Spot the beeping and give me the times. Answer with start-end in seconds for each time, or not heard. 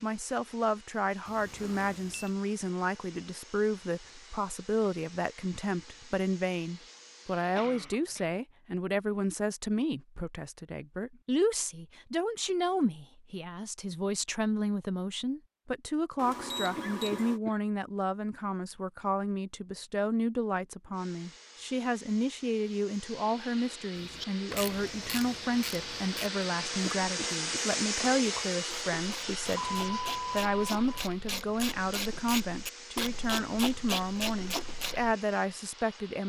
1.2-2.3, 16.1-17.4, 29.5-31.1.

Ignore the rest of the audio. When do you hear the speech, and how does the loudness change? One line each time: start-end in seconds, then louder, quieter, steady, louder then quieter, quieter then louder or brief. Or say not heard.
0.0-36.2 steady.